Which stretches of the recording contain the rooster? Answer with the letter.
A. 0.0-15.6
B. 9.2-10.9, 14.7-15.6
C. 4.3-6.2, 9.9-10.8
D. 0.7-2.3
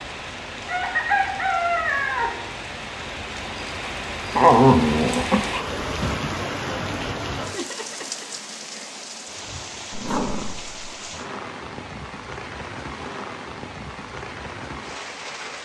D.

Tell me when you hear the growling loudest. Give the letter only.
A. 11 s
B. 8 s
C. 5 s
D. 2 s
C.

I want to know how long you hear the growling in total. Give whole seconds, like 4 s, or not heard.
3 s.